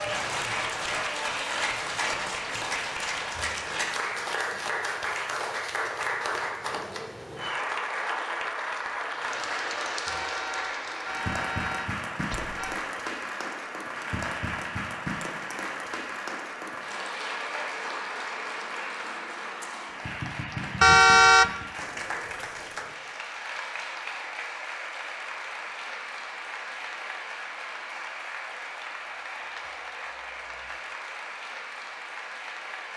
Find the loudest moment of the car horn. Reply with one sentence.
The volume of the car horn peaks at 21 seconds.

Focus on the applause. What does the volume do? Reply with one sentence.
The loudness of the applause goes down.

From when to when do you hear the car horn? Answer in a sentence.
The car horn can be heard from 10.1 to 12.8 s and from 20.8 to 21.5 s.